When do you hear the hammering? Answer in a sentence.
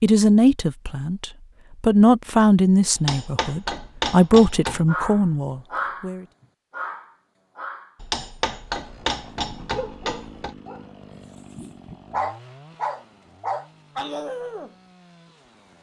You can hear the hammering from 3.0 to 4.8 s and from 8.0 to 10.6 s.